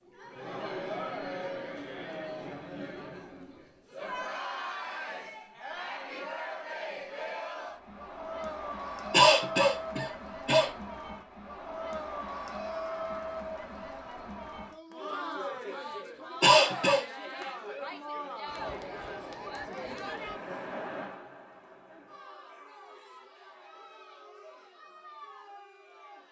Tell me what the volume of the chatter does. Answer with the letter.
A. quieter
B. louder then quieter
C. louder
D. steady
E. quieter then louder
A.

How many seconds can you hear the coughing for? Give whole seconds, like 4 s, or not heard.
2 s.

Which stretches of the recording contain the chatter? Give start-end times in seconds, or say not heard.
0.0-26.2.